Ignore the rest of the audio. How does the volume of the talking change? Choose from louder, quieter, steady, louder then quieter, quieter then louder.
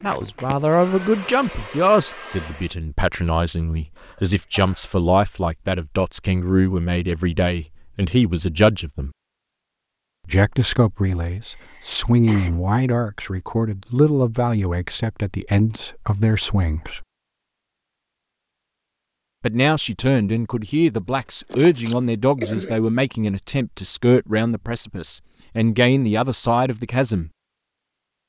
steady.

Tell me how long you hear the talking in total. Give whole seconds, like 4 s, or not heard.
24 s.